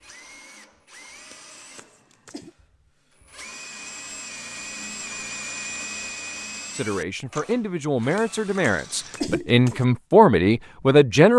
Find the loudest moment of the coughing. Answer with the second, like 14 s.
9 s.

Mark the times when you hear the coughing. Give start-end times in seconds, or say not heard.
1.3-2.5, 8.2-9.8.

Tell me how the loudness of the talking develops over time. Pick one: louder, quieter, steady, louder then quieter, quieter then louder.
louder.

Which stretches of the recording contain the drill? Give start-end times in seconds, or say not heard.
0.0-9.3.